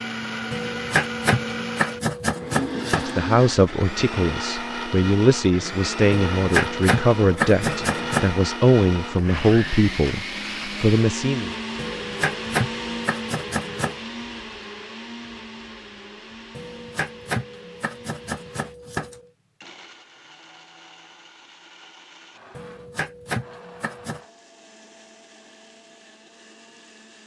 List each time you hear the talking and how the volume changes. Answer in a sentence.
The talking can be heard from 3.0 to 11.5 s, at a steady volume.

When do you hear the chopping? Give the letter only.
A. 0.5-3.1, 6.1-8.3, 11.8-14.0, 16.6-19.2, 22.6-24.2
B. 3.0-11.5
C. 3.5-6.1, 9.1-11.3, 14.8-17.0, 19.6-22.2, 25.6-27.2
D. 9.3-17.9
A.